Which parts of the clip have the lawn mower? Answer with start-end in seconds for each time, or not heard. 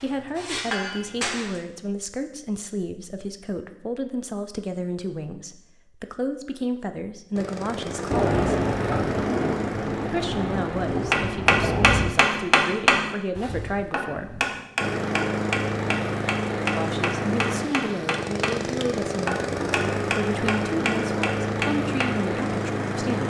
7.3-11.1, 14.8-23.2.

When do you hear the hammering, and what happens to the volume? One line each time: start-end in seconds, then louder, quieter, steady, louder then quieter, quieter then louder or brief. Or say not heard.
0.0-1.6 brief
11.1-22.4 quieter.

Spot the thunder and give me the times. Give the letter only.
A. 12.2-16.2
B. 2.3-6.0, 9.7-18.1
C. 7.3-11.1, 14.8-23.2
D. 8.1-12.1
D.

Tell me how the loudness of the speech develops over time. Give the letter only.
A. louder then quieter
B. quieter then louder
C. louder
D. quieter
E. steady
E.